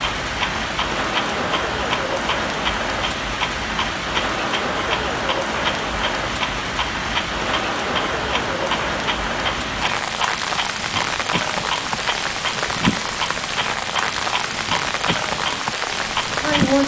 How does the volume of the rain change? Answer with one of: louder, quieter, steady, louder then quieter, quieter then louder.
steady.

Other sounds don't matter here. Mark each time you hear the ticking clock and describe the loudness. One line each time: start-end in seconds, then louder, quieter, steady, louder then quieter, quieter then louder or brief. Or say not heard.
0.0-16.8 steady.